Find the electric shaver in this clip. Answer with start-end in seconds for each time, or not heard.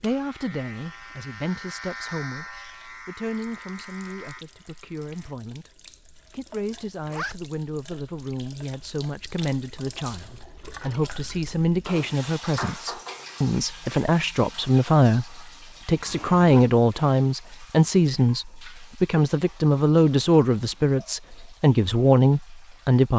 0.0-5.3.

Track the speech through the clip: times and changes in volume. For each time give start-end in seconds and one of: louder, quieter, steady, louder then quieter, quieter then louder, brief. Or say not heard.
0.0-2.5 brief
3.0-23.1 louder.